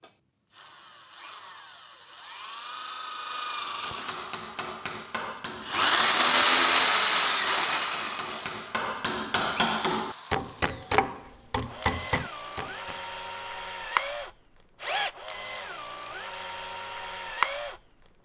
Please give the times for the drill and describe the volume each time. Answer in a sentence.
You can hear the drill from 0.0 to 18.2 s, getting louder then quieter.